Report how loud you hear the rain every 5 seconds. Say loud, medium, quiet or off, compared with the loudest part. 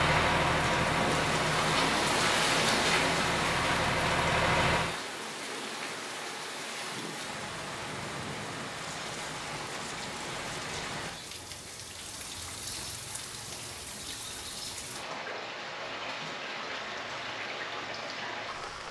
loud, medium, medium, medium.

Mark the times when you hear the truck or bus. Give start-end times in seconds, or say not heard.
0.0-5.0.